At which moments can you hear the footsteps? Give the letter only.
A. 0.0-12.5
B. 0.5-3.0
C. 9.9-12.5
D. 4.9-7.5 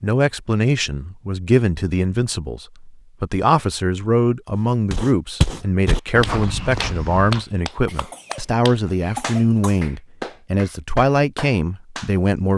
D.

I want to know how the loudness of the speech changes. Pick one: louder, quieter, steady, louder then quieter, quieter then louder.
steady.